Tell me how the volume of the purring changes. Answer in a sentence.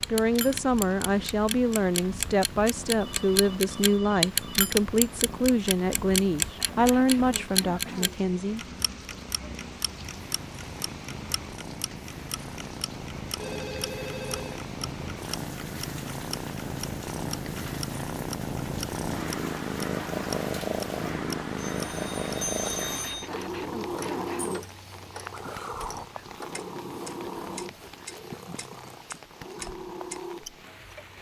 The volume of the purring goes up, then down.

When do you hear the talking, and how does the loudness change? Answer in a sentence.
The talking can be heard from 0.1 to 8.6 s, at a steady volume.